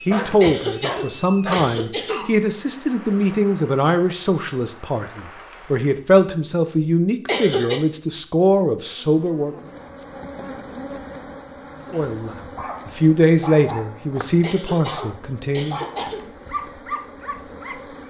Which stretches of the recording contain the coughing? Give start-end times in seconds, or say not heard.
0.4-2.3, 7.2-7.8, 14.4-16.3.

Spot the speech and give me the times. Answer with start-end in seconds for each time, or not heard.
0.1-9.6, 11.9-15.8.